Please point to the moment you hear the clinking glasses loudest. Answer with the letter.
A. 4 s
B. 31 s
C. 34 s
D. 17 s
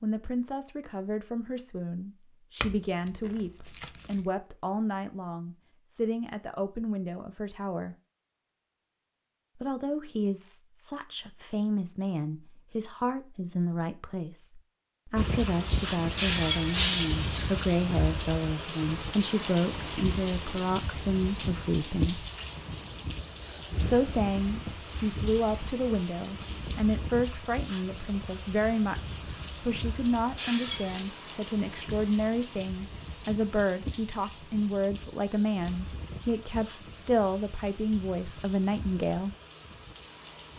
D.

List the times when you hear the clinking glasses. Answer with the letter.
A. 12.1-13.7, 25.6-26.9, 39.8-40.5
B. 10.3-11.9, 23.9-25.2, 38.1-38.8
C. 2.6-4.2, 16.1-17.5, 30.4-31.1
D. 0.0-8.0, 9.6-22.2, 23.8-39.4
C.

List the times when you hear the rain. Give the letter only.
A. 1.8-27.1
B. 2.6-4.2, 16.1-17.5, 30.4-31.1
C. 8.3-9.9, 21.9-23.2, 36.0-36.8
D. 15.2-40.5
D.